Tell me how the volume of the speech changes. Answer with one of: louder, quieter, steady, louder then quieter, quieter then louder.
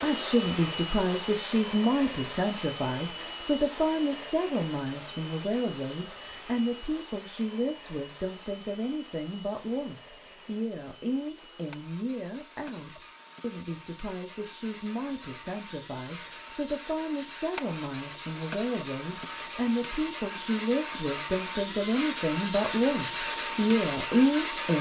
quieter then louder.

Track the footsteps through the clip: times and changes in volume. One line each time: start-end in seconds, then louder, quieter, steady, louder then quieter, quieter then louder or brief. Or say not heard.
not heard.